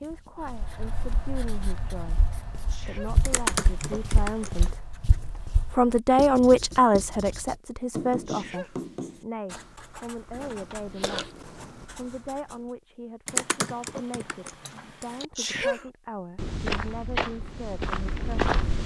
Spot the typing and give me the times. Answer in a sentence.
You can hear the typing from 3.2 to 4.7 s and from 13.2 to 15.2 s.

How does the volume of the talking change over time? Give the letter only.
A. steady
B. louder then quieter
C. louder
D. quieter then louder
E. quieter
B.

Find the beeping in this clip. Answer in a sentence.
The beeping can't be heard in this clip.